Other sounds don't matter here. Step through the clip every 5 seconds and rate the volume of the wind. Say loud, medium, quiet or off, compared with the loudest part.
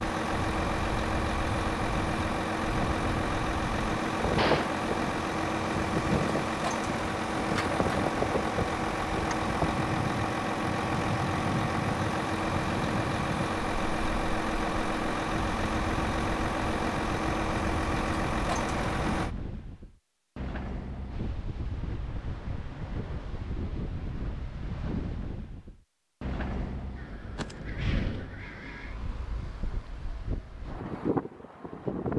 loud, loud, loud, medium, medium, medium, loud.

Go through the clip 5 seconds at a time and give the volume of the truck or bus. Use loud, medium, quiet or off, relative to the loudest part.
loud, loud, loud, loud, off, off, off.